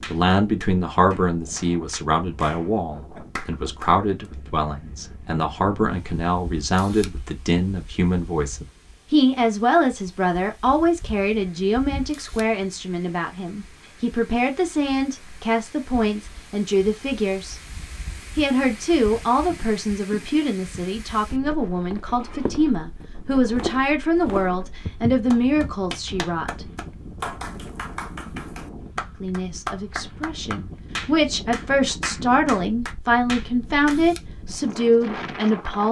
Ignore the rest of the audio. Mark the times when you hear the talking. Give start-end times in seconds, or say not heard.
0.1-17.6, 18.4-26.6, 29.2-35.8.